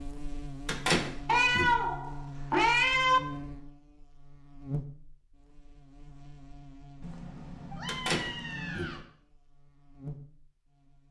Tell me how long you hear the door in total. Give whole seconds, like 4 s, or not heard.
2 s.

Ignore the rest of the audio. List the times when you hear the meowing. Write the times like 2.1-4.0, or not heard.
1.2-3.2, 7.0-9.1.